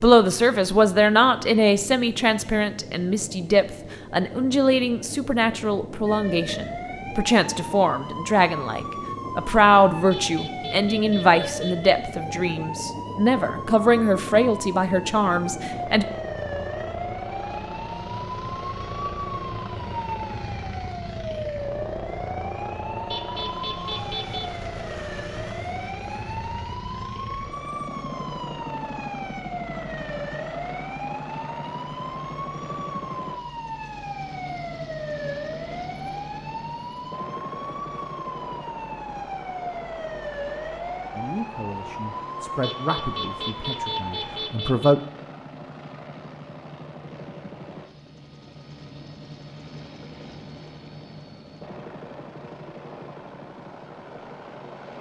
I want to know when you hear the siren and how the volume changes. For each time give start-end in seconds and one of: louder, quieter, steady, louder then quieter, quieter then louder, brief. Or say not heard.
6.0-44.4 steady.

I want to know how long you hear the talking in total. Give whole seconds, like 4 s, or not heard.
20 s.